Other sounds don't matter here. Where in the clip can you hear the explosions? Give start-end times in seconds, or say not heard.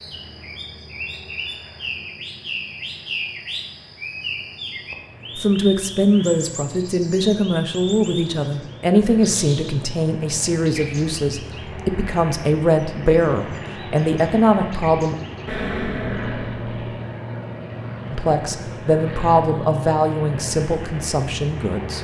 15.4-16.8.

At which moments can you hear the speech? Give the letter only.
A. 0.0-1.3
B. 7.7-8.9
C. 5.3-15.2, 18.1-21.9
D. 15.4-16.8
C.